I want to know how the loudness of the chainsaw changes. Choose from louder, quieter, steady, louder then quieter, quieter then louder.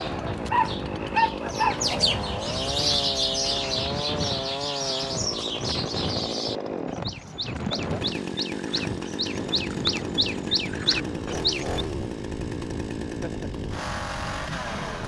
steady.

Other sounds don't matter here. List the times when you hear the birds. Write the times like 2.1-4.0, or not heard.
0.0-11.8.